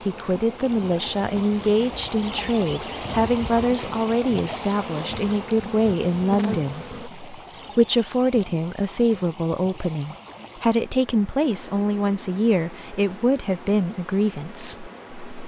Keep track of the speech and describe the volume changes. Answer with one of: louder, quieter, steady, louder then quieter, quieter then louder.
steady.